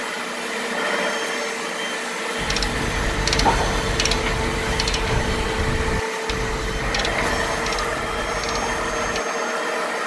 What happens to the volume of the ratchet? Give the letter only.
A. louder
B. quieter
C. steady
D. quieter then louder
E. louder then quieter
B.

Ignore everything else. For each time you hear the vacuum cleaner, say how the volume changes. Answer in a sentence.
The vacuum cleaner can be heard from 0.0 to 10.0 s, at a steady volume.